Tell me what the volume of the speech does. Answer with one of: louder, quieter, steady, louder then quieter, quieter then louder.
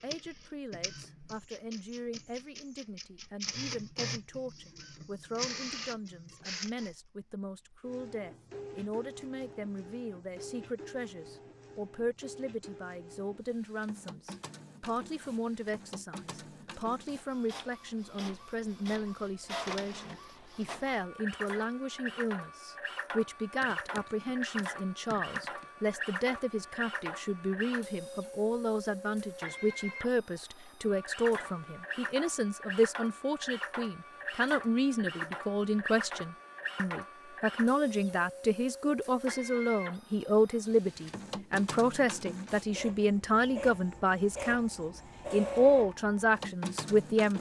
louder.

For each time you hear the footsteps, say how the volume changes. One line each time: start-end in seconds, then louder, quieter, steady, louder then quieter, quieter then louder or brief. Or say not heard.
not heard.